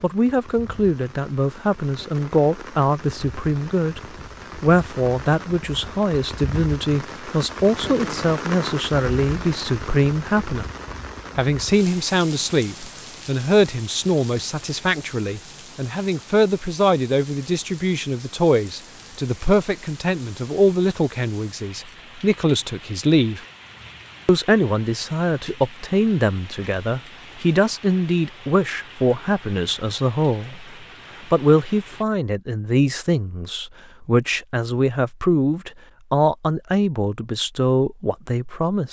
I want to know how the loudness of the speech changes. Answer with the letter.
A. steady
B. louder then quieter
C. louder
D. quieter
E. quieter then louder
A.